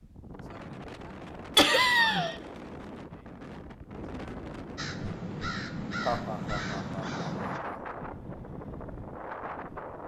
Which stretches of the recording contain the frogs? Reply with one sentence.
The frogs can't be heard in this clip.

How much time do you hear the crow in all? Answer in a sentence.
The crow can be heard for 3 seconds in total.